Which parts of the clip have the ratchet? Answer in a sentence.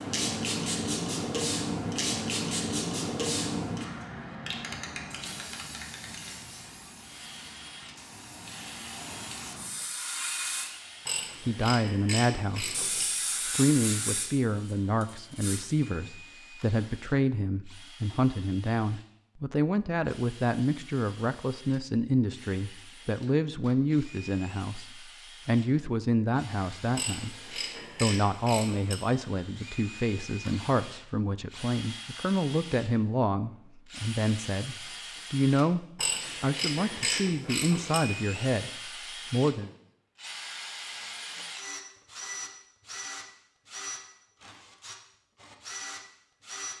The ratchet can be heard from 11.1 to 13.1 s, from 26.9 to 28.9 s and from 36.0 to 38.0 s.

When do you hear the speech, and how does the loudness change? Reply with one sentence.
You can hear the speech from 11.4 to 39.7 s, at a steady volume.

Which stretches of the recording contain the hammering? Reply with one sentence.
The hammering can't be heard in this clip.